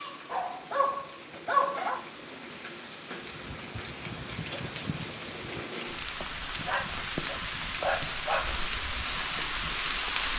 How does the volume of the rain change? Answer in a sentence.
The volume of the rain goes up.